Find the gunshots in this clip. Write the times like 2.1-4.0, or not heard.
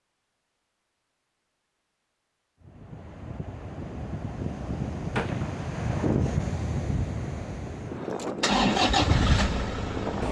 5.1-6.5.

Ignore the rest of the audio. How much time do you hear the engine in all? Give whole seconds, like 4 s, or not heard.
2 s.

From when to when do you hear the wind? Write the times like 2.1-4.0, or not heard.
2.6-10.2.